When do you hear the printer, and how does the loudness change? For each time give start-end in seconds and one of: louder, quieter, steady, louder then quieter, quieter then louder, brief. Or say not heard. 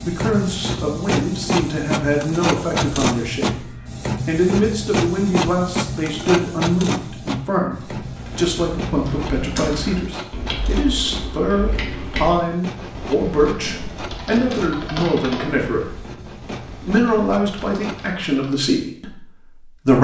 0.0-18.1 quieter.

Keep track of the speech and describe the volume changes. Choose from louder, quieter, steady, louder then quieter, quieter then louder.
steady.